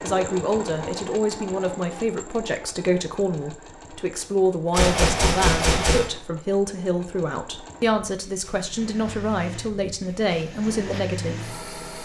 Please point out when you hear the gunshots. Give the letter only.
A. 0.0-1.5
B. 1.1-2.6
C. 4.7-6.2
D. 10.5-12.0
C.